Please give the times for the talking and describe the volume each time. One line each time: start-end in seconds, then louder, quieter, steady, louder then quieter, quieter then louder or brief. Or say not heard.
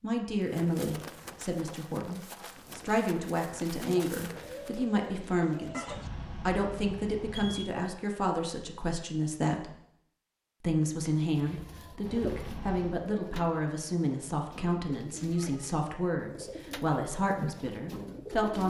0.0-9.8 steady
10.6-18.6 steady.